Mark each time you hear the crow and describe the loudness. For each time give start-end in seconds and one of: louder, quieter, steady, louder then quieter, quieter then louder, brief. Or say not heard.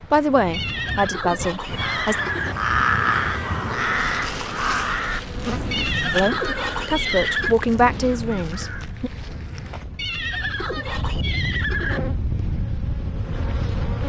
1.6-8.8 quieter.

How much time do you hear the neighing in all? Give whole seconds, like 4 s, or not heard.
6 s.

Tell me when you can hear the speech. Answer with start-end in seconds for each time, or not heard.
0.1-2.2, 6.1-9.1.